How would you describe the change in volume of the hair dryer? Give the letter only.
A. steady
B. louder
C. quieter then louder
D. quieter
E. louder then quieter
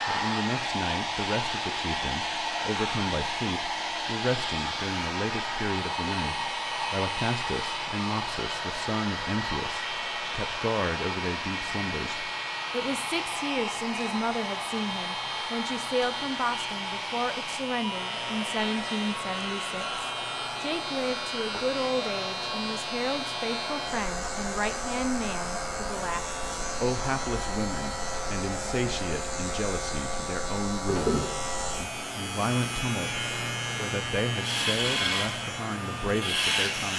D.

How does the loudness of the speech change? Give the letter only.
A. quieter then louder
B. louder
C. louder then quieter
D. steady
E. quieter
D.